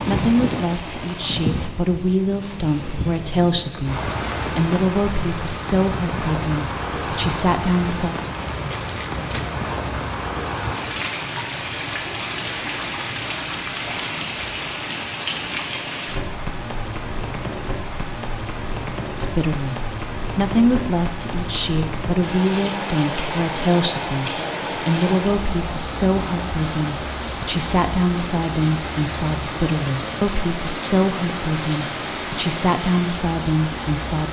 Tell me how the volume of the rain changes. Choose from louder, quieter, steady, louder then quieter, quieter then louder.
steady.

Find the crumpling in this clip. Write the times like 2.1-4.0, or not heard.
8.2-9.5.